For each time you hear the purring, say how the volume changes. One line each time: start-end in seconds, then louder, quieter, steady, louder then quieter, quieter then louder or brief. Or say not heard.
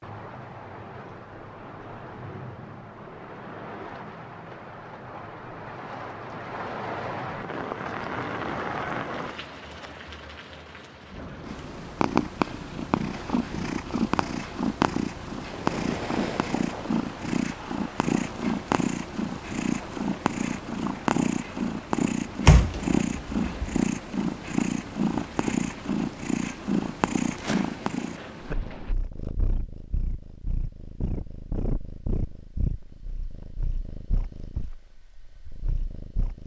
11.4-36.4 quieter.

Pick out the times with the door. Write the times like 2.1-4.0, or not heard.
22.4-23.8.